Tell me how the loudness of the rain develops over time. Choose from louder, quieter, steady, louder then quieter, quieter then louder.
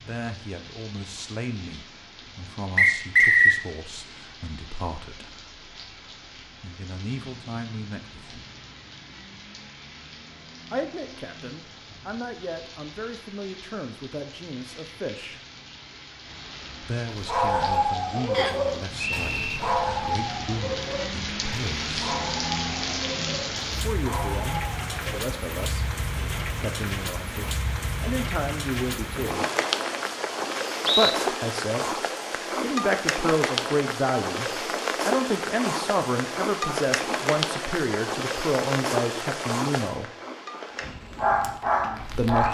louder.